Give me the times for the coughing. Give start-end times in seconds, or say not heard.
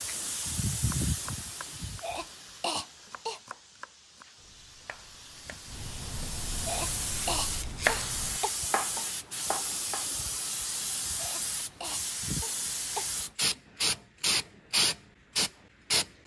2.0-3.4, 6.7-8.5, 11.2-13.2.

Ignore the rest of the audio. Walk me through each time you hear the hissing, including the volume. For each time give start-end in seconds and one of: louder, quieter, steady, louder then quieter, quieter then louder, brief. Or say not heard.
0.0-16.1 quieter then louder.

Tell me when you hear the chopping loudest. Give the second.
8 s.